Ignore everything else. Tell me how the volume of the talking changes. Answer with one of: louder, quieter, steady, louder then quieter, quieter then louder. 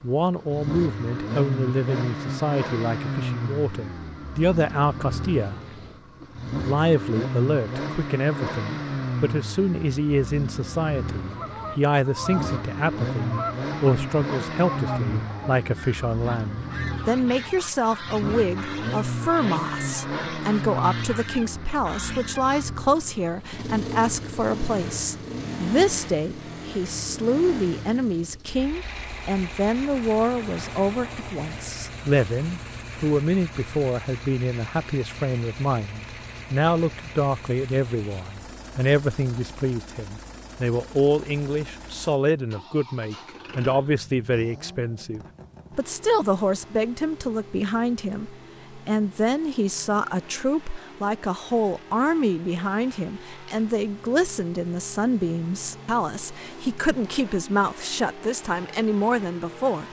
steady.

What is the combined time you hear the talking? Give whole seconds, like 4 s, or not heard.
59 s.